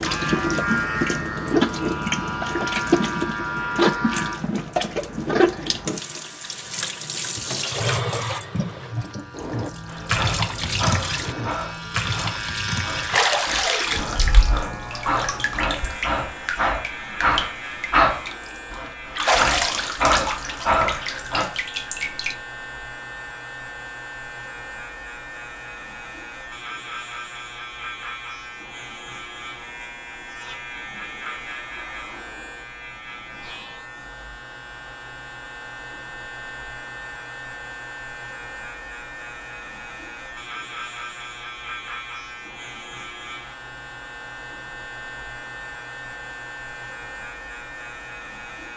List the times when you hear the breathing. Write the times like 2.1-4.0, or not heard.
9.8-21.4.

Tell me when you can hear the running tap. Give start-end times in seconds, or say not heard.
0.0-22.4.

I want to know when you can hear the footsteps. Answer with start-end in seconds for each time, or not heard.
not heard.